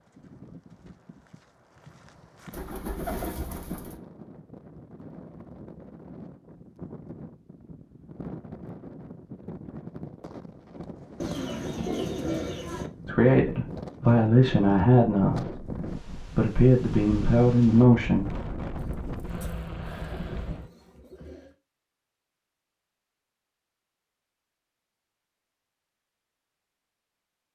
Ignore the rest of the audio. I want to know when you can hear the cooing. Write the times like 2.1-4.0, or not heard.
2.5-4.0, 11.2-12.8, 18.8-21.6.